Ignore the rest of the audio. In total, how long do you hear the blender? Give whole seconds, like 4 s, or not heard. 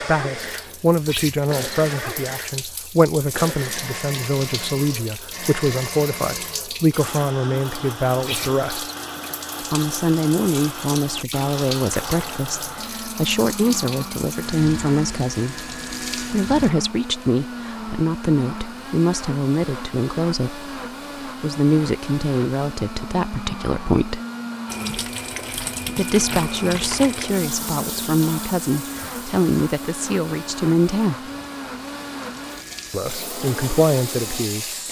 35 s.